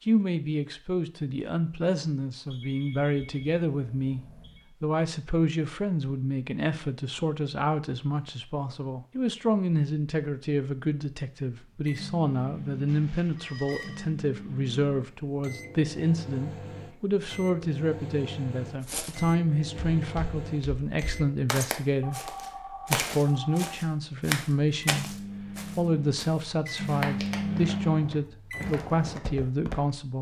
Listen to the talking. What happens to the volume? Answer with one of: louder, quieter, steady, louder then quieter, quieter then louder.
steady.